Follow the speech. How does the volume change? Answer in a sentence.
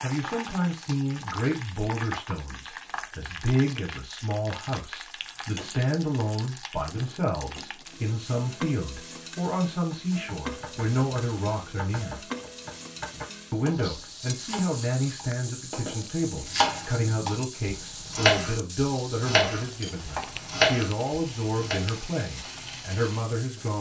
The loudness of the speech stays about the same.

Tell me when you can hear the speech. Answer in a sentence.
The speech can be heard from 0.0 to 12.2 s and from 13.5 to 23.7 s.